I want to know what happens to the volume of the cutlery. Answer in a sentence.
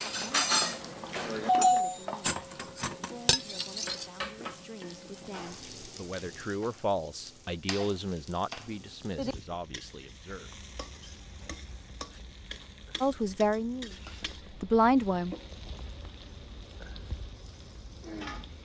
The volume of the cutlery goes down, then up.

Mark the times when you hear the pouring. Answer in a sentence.
The pouring can't be heard in this clip.